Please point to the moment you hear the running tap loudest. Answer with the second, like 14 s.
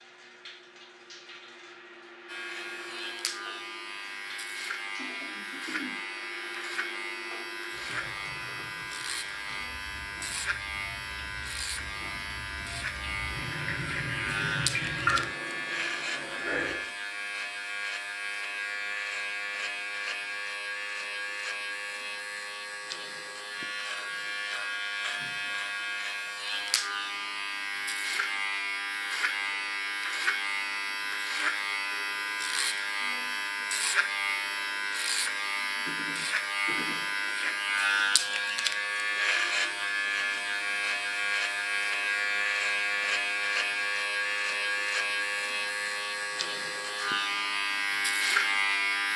15 s.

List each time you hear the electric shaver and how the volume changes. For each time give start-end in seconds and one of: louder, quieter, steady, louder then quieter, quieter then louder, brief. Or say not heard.
2.2-49.1 louder.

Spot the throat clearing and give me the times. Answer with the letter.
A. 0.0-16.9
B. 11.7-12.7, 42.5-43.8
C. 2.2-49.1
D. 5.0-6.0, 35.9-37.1
D.